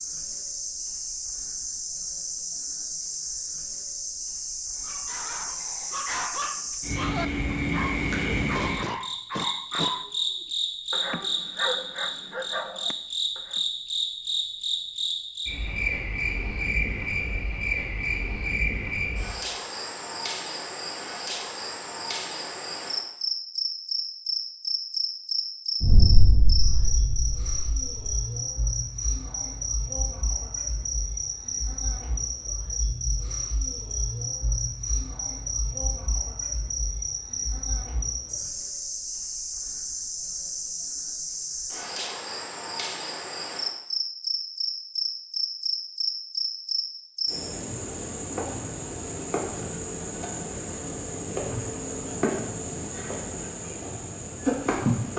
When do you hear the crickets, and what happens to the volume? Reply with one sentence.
The crickets can be heard from 0.0 to 55.1 s, at a steady volume.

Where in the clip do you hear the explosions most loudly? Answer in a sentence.
The volume of the explosions peaks at 26 seconds.